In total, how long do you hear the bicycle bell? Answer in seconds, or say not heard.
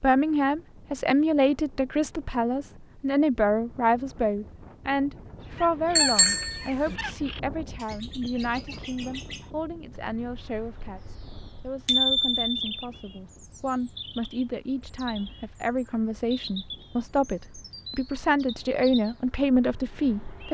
2 s.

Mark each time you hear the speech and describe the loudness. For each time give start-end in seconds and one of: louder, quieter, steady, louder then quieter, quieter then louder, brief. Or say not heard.
0.0-20.4 quieter then louder.